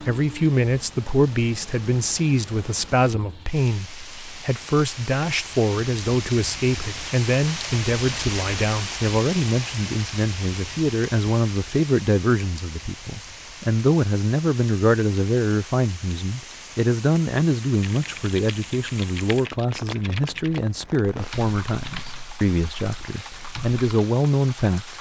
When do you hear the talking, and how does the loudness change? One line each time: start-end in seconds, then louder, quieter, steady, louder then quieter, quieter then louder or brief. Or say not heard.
0.0-24.9 steady.